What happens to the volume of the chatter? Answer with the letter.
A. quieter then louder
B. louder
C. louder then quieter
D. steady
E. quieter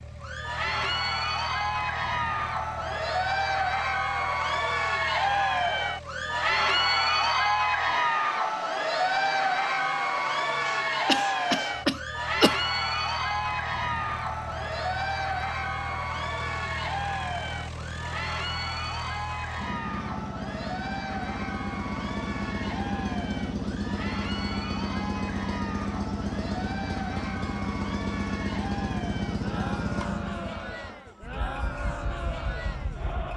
E.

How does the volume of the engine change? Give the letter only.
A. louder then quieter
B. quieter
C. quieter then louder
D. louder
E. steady
D.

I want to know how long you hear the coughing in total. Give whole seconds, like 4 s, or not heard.
2 s.